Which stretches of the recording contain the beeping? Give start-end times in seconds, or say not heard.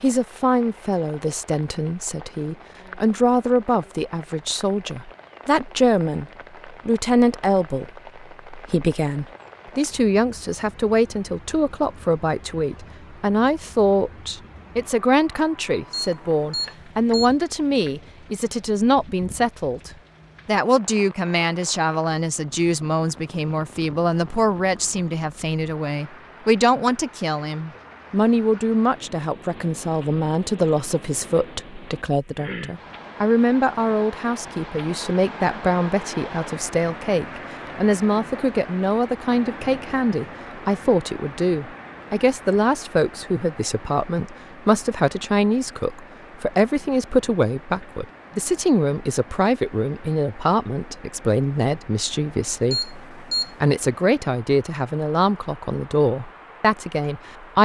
15.9-17.4, 52.7-53.5.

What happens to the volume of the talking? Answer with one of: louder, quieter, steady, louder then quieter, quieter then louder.
steady.